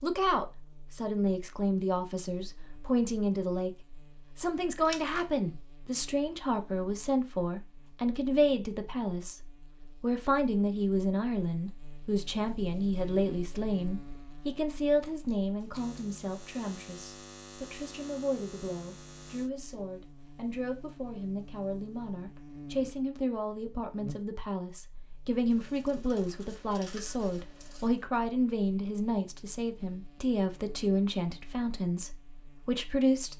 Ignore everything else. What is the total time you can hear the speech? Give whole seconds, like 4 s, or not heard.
33 s.